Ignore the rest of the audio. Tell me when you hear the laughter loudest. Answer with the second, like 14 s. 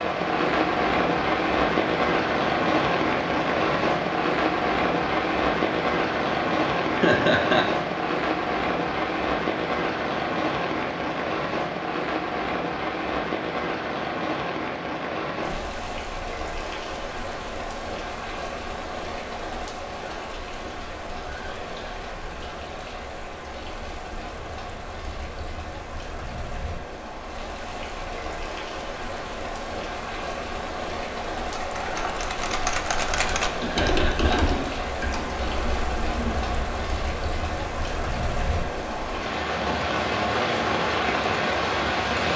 7 s.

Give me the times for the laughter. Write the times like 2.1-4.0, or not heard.
7.0-7.7, 33.6-34.5.